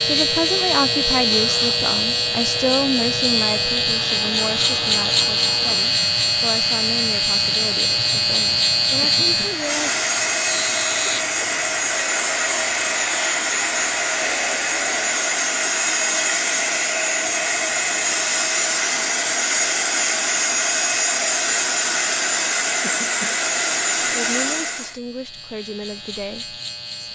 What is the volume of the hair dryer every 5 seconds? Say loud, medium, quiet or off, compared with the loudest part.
quiet, medium, loud, loud, loud, off.